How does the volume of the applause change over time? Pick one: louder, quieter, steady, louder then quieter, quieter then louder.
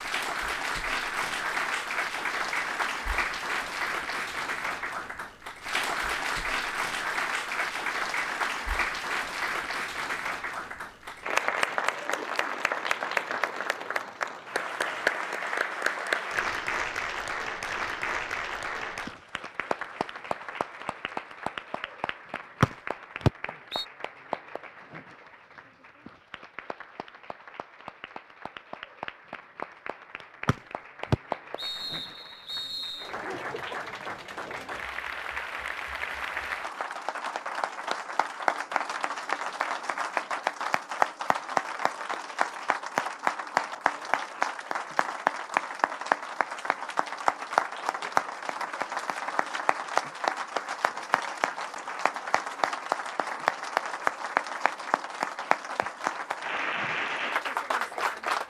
quieter then louder.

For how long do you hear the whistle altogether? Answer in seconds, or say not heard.
4 s.